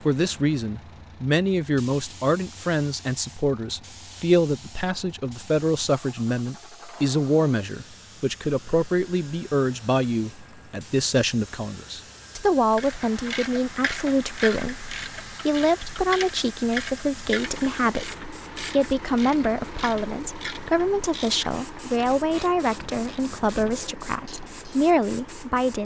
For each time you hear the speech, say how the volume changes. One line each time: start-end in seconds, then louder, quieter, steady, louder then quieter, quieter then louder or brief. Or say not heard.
0.1-25.8 steady.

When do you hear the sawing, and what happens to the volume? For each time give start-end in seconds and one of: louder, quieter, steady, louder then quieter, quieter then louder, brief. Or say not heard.
not heard.